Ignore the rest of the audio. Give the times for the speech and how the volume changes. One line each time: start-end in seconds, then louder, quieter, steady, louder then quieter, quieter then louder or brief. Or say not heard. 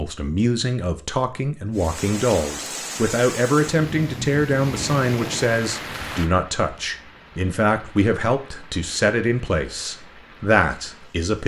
0.0-11.4 steady.